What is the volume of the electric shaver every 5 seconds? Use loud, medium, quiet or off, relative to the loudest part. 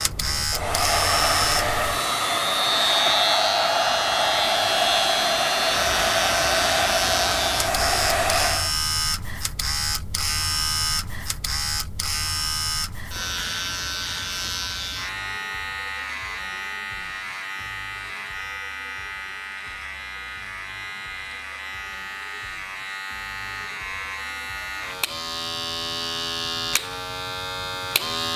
loud, loud, loud, medium, medium, loud.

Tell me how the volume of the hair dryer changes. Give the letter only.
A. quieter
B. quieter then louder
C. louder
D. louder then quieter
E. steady
E.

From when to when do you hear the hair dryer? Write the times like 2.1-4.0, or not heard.
0.0-8.7.